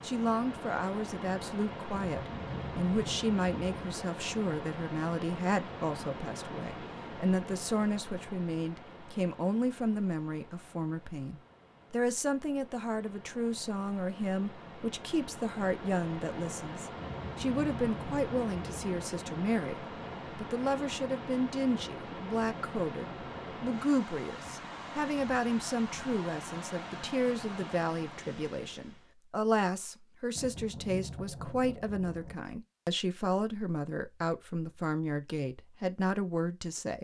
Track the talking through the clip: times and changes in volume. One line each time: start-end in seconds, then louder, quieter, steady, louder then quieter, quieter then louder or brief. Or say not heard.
0.0-37.0 steady.